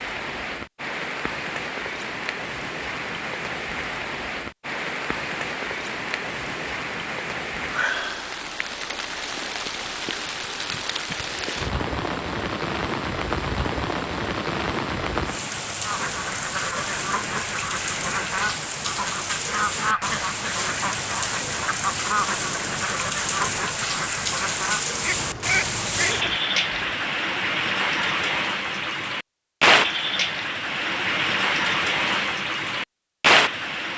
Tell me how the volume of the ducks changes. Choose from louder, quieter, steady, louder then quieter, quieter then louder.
steady.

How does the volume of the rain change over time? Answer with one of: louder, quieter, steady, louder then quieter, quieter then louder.
louder.